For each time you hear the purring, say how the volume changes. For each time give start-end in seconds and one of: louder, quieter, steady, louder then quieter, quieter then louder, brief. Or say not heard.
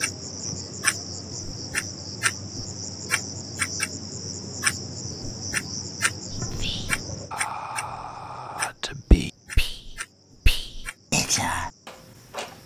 not heard.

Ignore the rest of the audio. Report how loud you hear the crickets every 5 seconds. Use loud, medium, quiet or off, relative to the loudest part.
loud, loud, quiet.